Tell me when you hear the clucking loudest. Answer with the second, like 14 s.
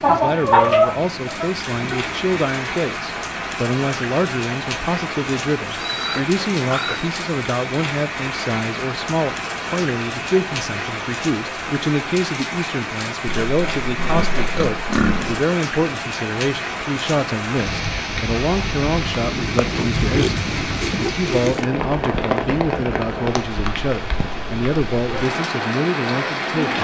1 s.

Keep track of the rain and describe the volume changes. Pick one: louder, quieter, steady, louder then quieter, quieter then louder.
steady.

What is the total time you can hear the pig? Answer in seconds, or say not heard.
6 s.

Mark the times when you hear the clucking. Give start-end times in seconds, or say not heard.
0.0-2.4.